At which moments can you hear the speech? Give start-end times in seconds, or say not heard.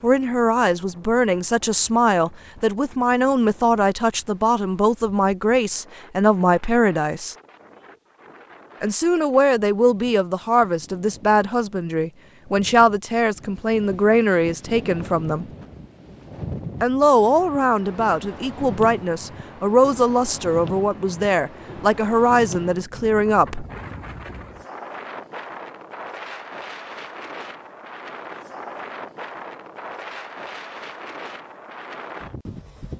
0.0-7.3, 8.8-15.4, 16.8-23.6.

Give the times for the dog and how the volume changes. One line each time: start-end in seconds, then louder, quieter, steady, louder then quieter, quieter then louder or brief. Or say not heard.
not heard.